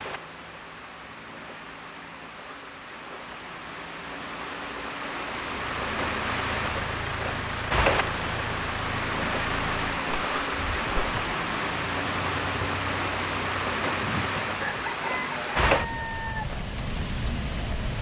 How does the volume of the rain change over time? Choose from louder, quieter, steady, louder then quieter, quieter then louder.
louder.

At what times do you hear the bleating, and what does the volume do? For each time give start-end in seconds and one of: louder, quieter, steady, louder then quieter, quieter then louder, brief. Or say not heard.
not heard.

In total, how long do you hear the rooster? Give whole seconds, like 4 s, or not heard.
2 s.